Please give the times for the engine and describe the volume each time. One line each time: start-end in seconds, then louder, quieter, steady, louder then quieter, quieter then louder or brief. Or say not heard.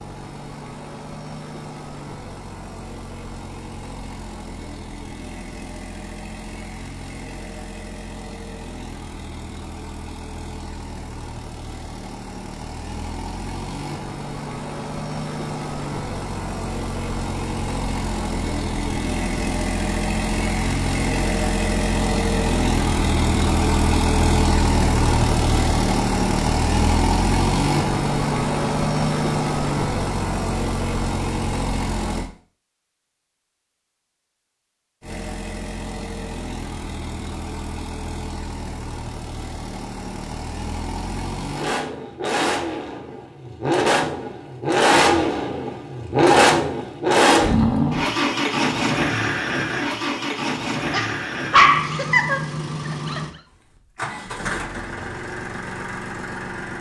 0.0-32.3 louder
35.0-56.7 louder then quieter.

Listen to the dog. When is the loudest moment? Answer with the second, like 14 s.
52 s.